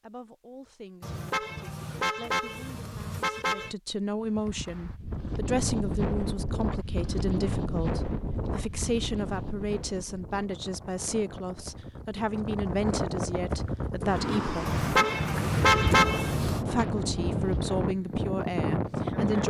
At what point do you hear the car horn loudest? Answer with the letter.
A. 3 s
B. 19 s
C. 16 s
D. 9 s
C.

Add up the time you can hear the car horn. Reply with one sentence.
The car horn can be heard for 5 seconds in total.